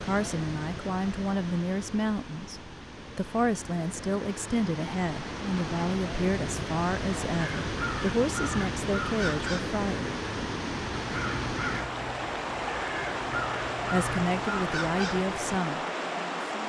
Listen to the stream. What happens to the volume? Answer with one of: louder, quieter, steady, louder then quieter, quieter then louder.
louder.